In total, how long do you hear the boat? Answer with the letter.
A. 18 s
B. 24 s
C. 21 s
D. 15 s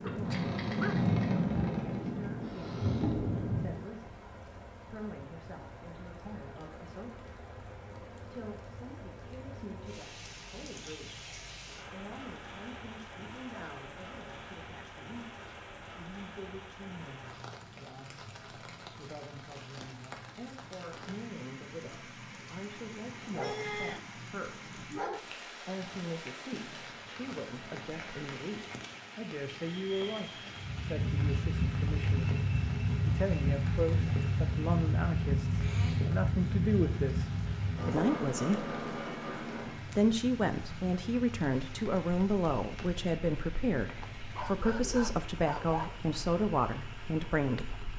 C.